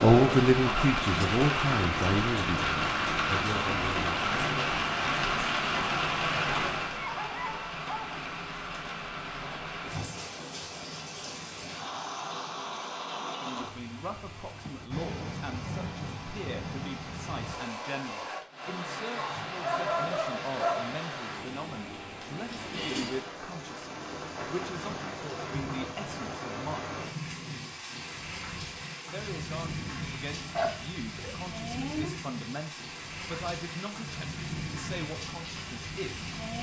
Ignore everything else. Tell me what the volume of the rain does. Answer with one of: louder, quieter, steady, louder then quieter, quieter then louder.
quieter.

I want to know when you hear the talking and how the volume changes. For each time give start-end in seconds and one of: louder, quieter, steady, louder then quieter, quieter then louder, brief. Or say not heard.
0.0-4.7 quieter
13.4-26.9 steady
29.1-36.3 steady.